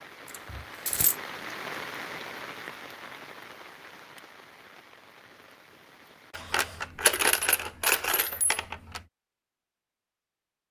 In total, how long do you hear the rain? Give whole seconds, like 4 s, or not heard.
6 s.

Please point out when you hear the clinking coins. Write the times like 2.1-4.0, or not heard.
0.2-1.1, 6.3-9.0.